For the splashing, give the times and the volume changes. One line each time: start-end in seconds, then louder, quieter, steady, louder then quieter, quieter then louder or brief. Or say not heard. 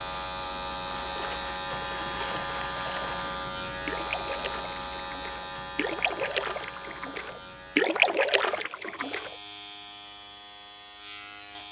1.0-9.3 louder.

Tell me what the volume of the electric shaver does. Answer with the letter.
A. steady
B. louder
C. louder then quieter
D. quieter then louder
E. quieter
E.